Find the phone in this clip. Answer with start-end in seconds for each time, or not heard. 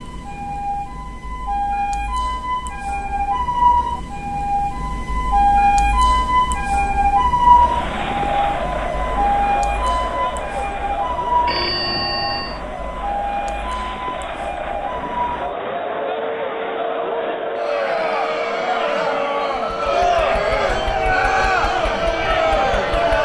11.4-12.6.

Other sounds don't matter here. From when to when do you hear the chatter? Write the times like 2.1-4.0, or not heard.
7.5-23.2.